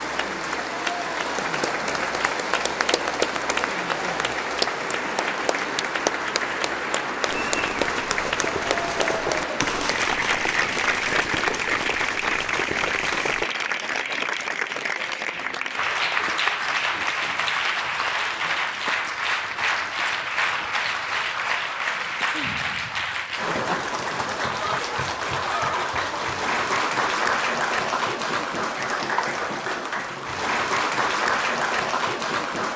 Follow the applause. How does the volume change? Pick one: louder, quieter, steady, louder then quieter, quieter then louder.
steady.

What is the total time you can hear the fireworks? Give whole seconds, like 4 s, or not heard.
6 s.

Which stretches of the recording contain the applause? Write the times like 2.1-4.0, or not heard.
0.0-32.7.